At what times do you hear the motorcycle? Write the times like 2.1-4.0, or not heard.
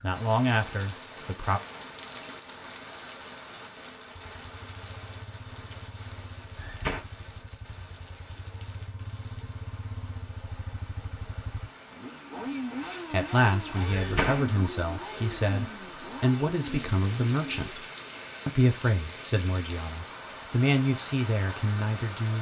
4.3-17.7.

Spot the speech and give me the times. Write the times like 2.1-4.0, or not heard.
0.0-1.6, 13.1-17.9, 18.4-22.3.